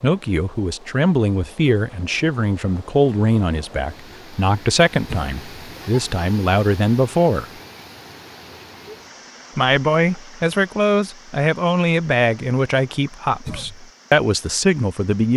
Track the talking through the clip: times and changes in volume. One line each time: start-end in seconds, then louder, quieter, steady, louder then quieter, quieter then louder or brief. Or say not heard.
0.0-7.5 steady
9.6-15.3 quieter then louder.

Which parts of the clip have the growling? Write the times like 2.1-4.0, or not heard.
not heard.